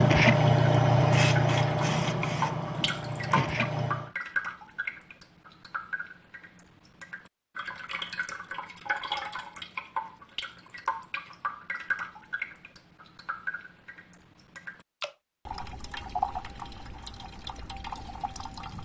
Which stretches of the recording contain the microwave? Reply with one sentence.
You can't hear the microwave here.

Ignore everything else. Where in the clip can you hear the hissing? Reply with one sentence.
The hissing can be heard from 0.0 to 4.1 s.